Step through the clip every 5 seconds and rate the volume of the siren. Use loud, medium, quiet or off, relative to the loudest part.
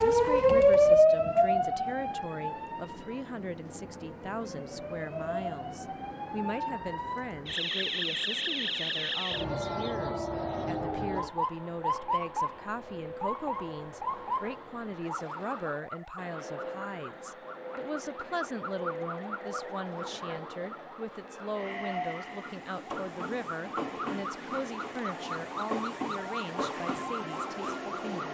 loud, medium, medium, quiet, quiet, quiet.